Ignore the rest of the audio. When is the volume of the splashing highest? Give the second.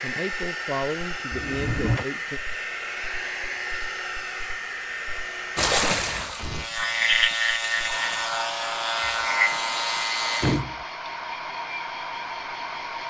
6 s.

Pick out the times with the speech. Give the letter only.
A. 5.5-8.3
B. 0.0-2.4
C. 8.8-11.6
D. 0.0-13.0
B.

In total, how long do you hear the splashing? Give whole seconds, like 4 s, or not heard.
3 s.